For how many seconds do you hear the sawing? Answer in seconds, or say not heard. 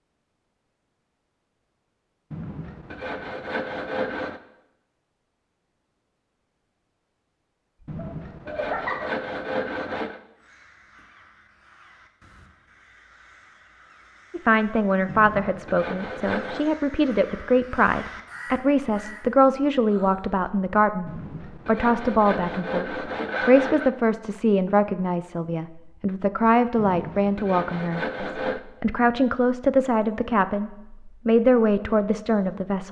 11 s.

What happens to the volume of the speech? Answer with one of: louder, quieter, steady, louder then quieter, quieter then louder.
steady.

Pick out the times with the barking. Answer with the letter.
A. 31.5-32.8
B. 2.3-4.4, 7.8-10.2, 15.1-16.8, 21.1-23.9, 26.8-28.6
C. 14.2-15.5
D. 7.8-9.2
D.